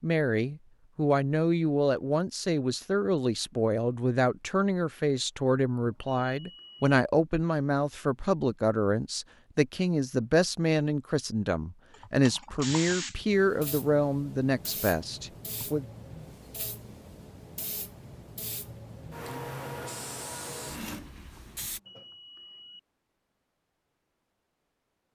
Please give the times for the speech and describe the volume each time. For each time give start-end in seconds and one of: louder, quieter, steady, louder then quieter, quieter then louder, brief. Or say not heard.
0.0-15.8 steady.